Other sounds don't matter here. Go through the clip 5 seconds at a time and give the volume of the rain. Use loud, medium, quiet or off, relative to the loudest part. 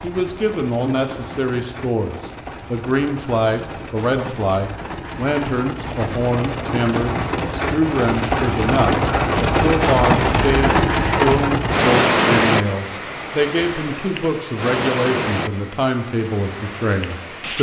quiet, loud, loud, medium.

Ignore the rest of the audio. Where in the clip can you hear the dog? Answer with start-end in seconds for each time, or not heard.
not heard.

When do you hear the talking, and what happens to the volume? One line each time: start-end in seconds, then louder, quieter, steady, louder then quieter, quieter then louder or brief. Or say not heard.
0.0-17.5 steady.